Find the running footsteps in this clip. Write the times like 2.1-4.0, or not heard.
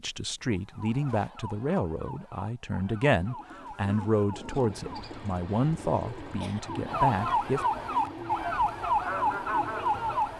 not heard.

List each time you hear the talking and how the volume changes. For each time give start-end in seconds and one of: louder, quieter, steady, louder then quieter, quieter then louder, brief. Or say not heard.
0.0-7.7 steady.